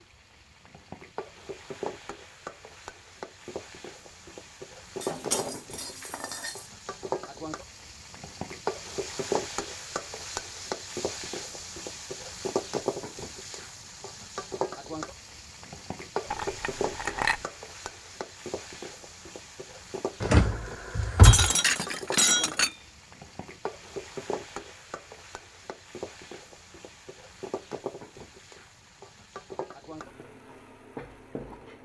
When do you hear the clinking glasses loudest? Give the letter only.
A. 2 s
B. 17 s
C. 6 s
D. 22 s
D.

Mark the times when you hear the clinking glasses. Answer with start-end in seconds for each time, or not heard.
5.0-6.7, 16.3-17.4, 21.2-22.8.